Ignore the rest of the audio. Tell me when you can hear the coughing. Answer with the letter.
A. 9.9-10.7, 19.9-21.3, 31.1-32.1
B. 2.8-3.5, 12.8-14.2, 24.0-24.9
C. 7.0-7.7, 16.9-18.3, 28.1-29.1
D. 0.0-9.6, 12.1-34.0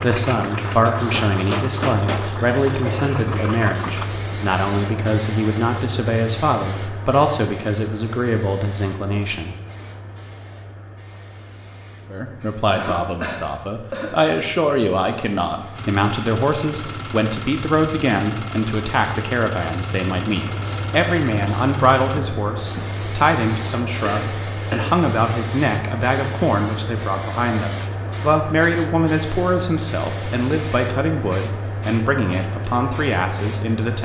B.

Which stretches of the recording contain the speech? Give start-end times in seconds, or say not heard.
0.0-9.6, 12.1-34.0.